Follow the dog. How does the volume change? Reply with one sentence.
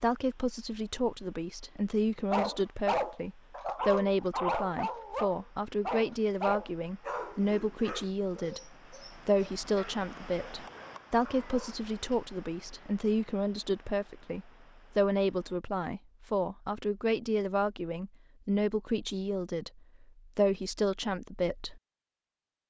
The volume of the dog goes down.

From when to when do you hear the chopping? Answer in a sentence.
The chopping can't be heard in this clip.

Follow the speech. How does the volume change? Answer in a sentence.
The volume of the speech stays about the same.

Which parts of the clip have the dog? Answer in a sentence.
The dog can be heard from 2.3 to 11.8 s.